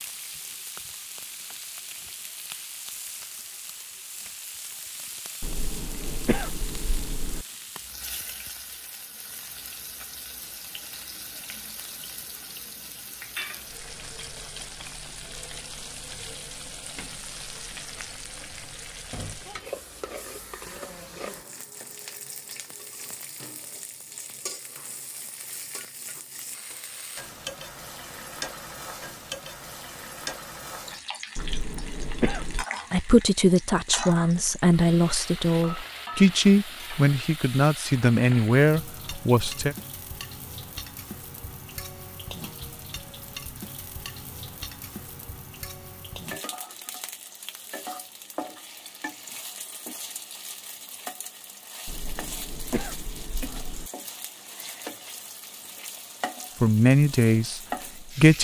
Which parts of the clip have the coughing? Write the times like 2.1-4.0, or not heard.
5.4-7.5, 31.4-32.6, 51.9-53.9.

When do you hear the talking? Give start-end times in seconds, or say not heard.
32.9-39.8, 56.6-58.3.